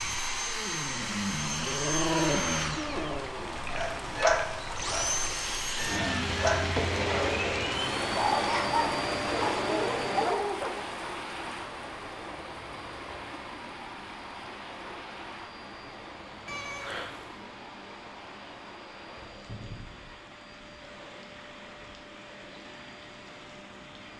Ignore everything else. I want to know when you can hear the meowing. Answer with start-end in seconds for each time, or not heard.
5.8-6.3, 16.4-17.4.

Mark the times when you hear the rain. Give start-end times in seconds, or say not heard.
0.0-24.1.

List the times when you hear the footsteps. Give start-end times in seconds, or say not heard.
not heard.